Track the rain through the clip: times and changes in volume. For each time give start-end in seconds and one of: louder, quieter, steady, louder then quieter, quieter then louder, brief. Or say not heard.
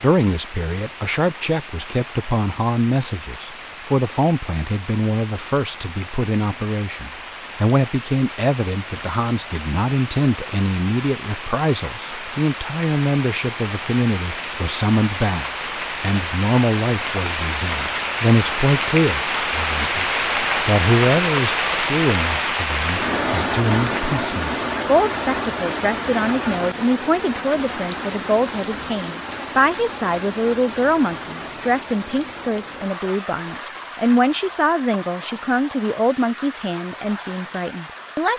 0.0-38.3 louder then quieter.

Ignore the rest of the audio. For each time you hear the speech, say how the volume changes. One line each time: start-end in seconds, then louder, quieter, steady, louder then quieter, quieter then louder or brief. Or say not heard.
0.0-20.1 steady
20.6-38.3 steady.